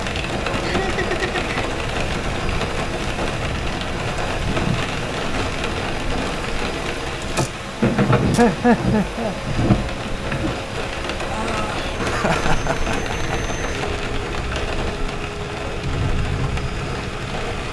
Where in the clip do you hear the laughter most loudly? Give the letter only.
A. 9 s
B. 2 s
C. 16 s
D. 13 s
A.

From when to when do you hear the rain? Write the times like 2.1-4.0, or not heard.
0.0-17.6.